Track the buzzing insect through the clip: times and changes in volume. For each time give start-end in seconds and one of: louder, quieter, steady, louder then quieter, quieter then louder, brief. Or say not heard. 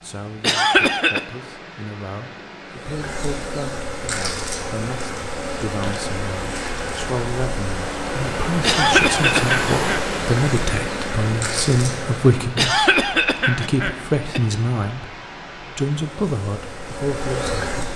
2.7-12.4 steady
16.1-17.9 brief.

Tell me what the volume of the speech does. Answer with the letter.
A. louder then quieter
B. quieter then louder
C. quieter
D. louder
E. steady
D.